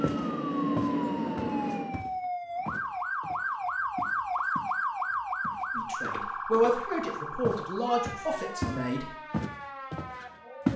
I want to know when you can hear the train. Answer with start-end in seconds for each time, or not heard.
0.0-2.0.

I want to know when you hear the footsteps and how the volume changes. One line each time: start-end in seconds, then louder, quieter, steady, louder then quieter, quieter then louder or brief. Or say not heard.
0.0-4.8 quieter
5.4-10.7 louder then quieter.